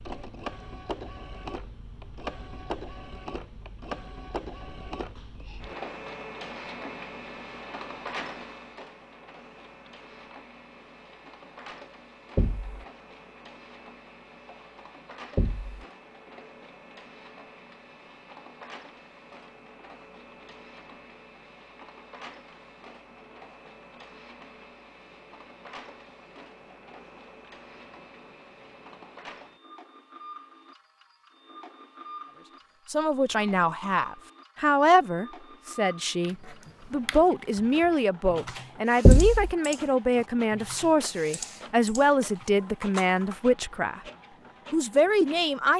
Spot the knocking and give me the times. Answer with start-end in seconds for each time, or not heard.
12.3-12.8, 15.3-15.8, 39.0-39.5.